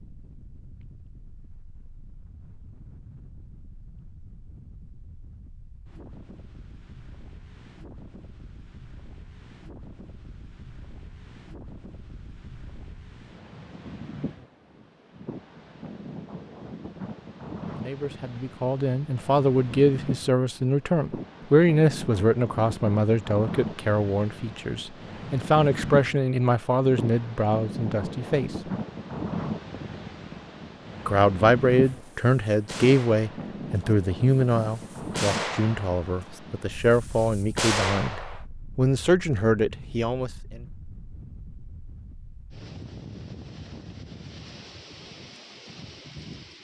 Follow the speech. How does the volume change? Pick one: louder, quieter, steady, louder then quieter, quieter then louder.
steady.